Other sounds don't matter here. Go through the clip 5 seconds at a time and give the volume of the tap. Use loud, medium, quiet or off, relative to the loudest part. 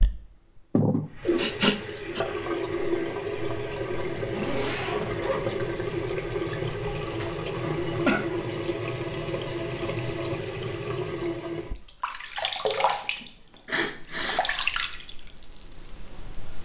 loud, loud, loud, quiet.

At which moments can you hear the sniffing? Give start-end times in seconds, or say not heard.
0.8-2.2, 7.2-8.2, 12.9-14.4.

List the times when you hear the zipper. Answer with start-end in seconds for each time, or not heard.
4.2-5.5.